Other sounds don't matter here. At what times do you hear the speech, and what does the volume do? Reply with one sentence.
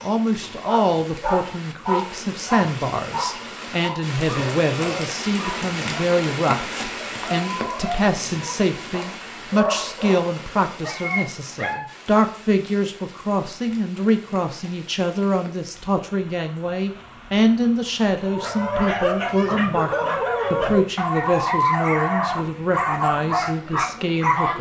You can hear the speech from 0.0 to 24.5 s, at a steady volume.